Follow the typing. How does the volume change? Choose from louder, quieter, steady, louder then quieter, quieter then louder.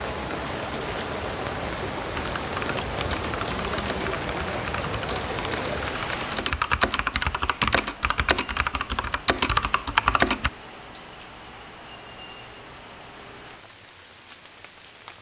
louder.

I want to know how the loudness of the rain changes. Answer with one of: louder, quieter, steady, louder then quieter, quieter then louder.
quieter.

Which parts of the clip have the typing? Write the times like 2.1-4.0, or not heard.
2.1-10.5.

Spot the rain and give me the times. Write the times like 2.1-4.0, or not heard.
0.0-15.1.